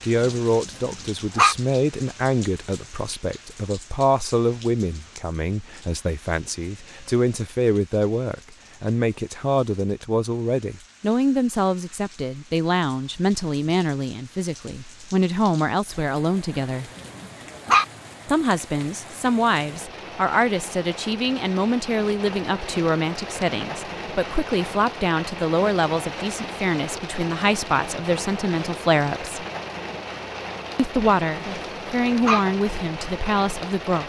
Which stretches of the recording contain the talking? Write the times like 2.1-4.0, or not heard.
0.1-16.9, 18.2-29.4, 30.8-34.0.